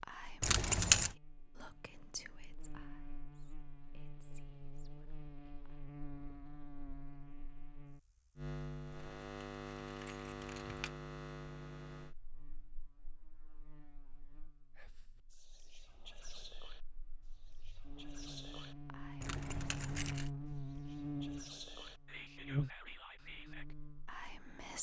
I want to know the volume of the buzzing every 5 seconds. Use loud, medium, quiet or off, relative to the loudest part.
quiet, medium, medium, medium, loud.